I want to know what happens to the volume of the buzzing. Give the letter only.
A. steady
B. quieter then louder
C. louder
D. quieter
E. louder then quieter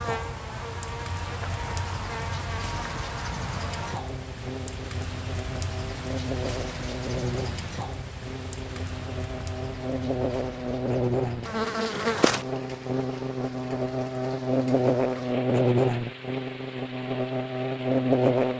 C.